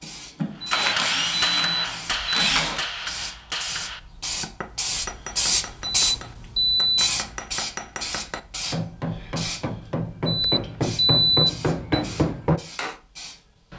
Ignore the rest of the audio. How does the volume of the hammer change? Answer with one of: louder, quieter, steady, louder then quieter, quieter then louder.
quieter then louder.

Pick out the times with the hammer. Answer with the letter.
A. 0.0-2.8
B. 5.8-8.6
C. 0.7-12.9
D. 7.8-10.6
C.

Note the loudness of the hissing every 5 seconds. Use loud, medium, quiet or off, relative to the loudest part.
medium, loud, quiet.